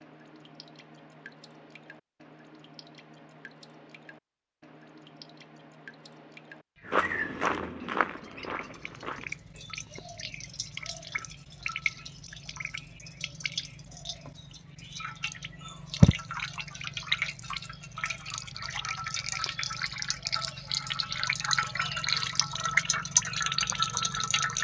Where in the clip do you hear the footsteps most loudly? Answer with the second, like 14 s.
7 s.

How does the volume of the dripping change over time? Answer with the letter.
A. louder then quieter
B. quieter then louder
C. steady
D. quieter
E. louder
E.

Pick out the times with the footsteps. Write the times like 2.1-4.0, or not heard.
6.8-9.4.